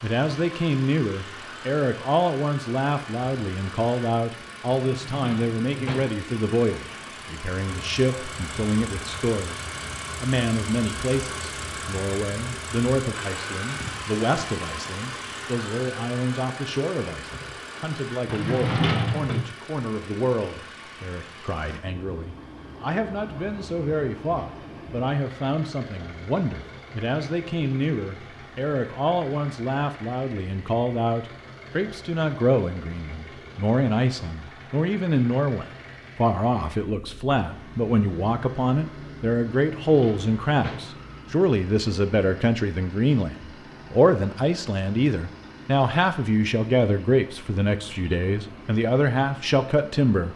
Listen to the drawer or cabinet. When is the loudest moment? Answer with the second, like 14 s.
19 s.